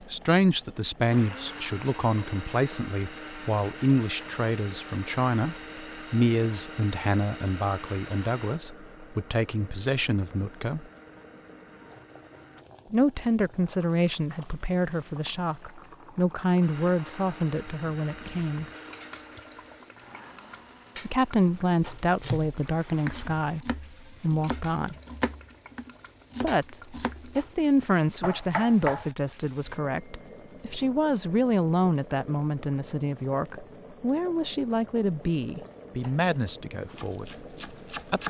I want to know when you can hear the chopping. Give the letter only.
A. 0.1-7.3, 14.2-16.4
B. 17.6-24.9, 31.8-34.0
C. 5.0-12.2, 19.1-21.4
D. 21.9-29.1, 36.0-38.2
D.